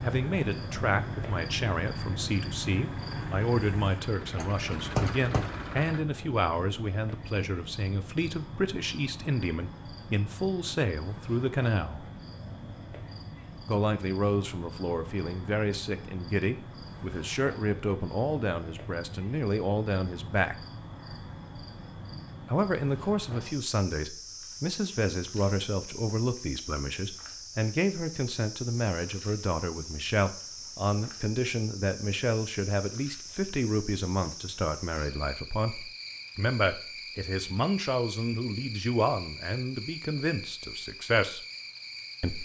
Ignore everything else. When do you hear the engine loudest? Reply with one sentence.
The volume of the engine peaks at 5 seconds.